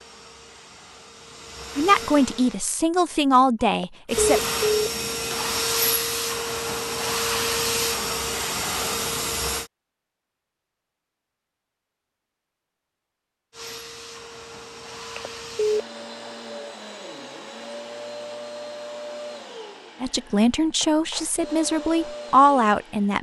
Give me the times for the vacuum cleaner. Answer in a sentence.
The vacuum cleaner can be heard from 0.0 to 2.6 s, from 4.0 to 9.7 s and from 13.5 to 23.1 s.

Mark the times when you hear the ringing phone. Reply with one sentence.
You can hear the ringing phone from 3.6 to 4.8 s and from 15.0 to 15.8 s.